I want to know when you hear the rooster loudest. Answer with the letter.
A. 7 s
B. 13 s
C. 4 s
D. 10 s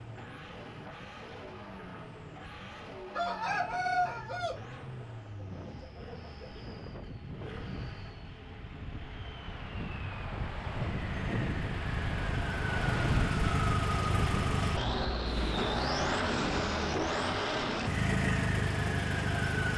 C.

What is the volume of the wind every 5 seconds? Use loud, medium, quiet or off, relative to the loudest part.
quiet, medium, loud, loud.